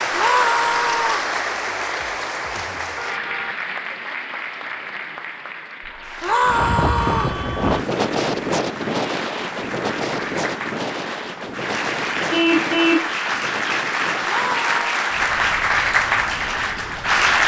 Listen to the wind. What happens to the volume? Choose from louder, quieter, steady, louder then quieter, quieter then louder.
quieter.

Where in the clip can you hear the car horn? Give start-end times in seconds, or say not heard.
1.9-3.5, 5.8-7.8, 12.3-13.1.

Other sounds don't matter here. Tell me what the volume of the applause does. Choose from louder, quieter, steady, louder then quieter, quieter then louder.
quieter then louder.